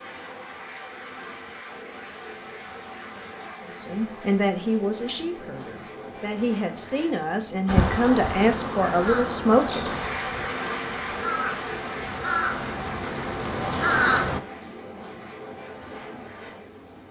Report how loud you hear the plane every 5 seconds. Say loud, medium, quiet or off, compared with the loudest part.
medium, medium, loud, medium.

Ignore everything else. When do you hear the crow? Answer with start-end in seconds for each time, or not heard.
7.7-14.4.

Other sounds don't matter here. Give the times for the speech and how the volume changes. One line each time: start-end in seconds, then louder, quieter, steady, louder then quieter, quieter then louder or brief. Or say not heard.
3.8-10.0 quieter then louder.